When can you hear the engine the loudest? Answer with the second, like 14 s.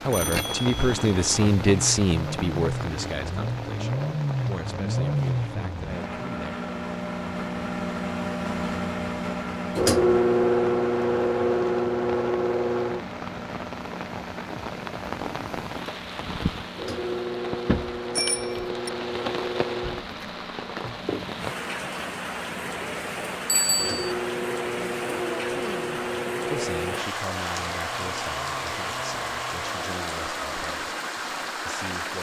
10 s.